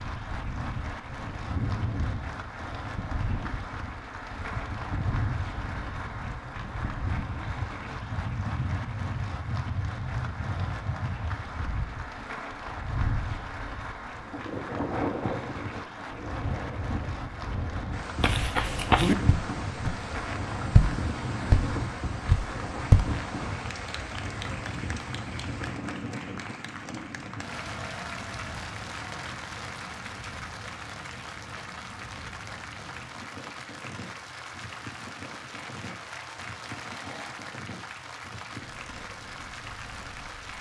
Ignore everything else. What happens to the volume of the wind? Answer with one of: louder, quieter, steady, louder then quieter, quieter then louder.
quieter.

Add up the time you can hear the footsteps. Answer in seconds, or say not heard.
5 s.